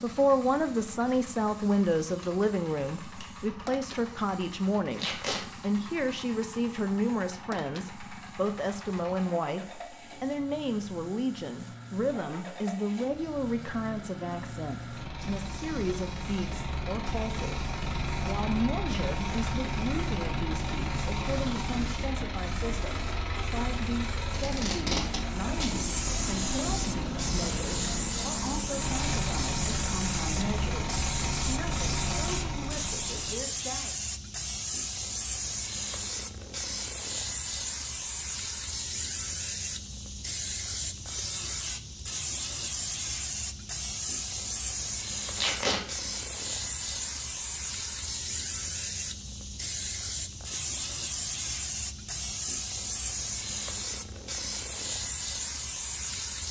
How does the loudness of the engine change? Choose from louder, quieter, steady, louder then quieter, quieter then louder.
louder.